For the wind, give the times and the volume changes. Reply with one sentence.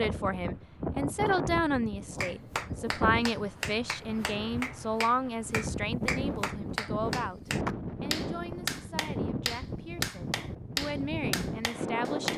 You can hear the wind from 0.0 to 12.3 s, at a steady volume.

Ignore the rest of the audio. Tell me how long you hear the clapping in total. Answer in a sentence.
The clapping can be heard for 10 seconds in total.